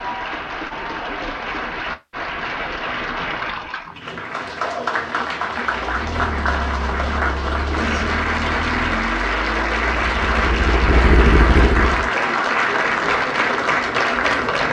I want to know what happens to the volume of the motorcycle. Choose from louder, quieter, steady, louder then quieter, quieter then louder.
louder.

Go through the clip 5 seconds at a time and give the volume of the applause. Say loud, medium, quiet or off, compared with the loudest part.
medium, loud, loud.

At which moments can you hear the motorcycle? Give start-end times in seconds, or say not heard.
5.8-12.1.